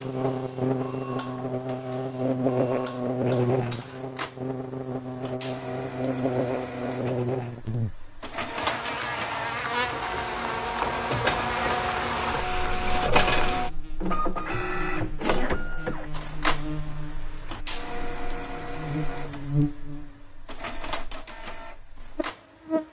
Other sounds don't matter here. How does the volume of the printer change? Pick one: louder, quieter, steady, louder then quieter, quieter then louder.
louder then quieter.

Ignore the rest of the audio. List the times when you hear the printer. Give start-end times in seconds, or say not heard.
0.0-22.8.